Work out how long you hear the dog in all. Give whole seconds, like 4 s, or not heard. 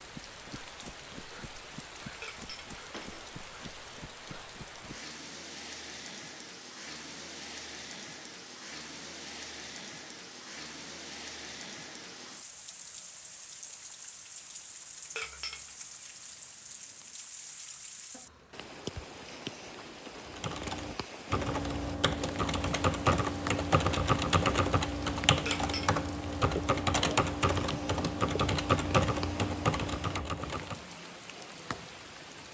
not heard.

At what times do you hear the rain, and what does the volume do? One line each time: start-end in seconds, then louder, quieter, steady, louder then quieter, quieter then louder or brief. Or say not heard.
0.0-32.4 steady.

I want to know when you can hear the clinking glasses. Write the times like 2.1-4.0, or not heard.
2.2-3.4, 15.2-15.8, 25.4-26.0.